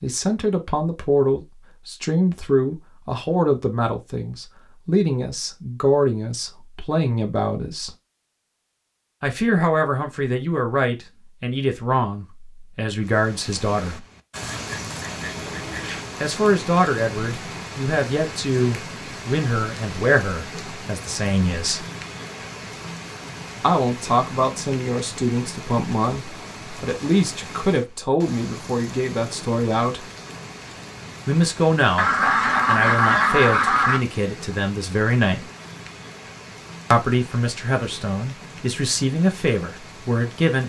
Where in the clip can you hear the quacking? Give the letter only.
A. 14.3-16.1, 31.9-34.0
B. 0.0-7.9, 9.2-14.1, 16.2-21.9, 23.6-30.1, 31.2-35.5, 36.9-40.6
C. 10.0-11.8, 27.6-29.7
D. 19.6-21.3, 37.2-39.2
A.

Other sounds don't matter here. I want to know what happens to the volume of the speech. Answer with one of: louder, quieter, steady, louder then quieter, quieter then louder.
steady.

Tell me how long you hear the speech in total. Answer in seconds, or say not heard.
33 s.